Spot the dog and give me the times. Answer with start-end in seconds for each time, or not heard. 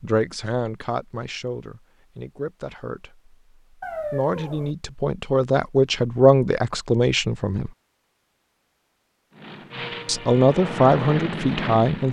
3.8-4.8.